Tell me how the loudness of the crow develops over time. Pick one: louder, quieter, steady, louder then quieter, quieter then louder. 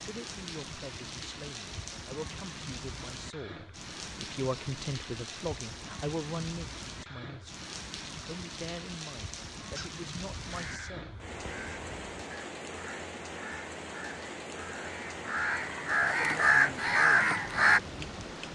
louder.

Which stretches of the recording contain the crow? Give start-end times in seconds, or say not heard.
9.8-17.8.